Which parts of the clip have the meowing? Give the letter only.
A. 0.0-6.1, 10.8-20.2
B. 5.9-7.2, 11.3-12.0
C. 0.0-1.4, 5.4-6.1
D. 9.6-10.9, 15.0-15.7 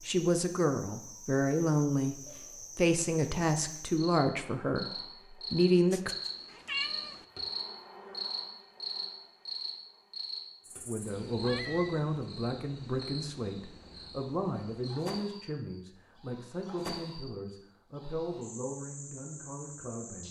B.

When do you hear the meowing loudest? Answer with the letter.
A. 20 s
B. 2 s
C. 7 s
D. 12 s
C.